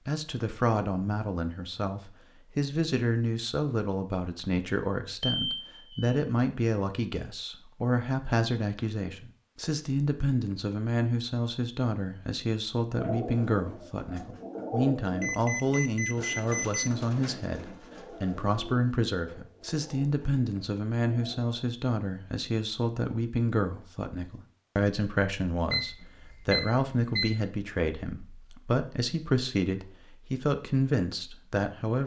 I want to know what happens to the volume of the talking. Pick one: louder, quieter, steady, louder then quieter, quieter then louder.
steady.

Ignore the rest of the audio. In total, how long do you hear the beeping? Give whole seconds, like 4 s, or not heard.
4 s.